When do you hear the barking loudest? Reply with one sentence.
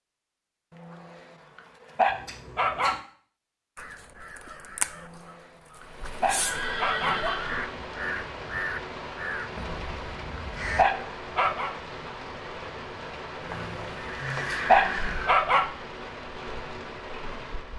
The volume of the barking peaks at 15 seconds.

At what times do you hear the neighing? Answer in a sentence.
You can hear the neighing from 2.0 to 3.0 s, from 6.3 to 7.7 s and from 13.4 to 15.3 s.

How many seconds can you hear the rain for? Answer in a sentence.
You can hear the rain for 12 seconds altogether.